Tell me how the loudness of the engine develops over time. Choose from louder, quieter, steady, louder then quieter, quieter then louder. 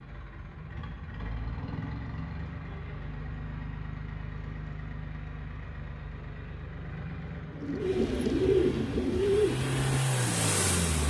louder.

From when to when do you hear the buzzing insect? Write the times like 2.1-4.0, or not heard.
not heard.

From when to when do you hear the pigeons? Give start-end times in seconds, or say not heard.
7.5-11.0.